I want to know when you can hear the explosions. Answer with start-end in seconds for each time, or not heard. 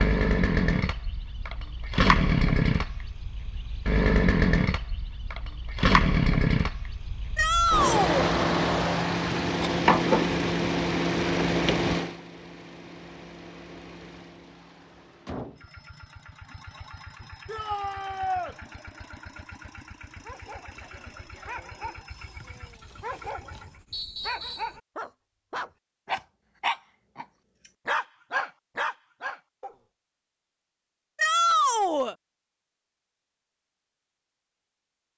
not heard.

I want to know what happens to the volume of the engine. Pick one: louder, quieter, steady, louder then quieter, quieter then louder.
quieter.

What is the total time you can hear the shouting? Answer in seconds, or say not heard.
3 s.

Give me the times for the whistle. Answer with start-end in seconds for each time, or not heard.
23.9-24.8.